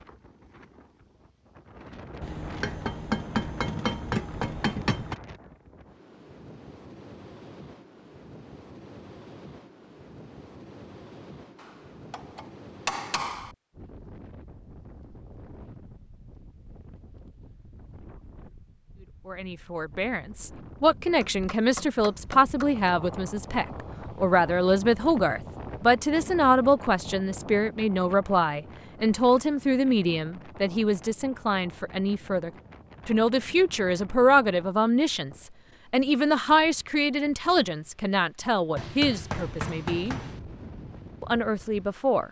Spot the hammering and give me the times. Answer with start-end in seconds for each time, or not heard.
2.2-5.2, 11.6-13.6, 21.2-22.8, 38.8-40.4.